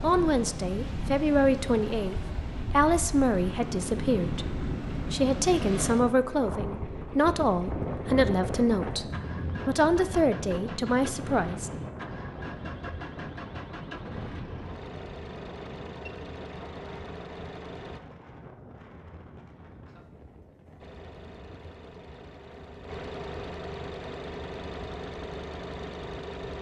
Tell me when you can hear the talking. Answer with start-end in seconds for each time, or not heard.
0.0-11.7.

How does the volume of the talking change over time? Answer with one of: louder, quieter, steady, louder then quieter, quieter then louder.
steady.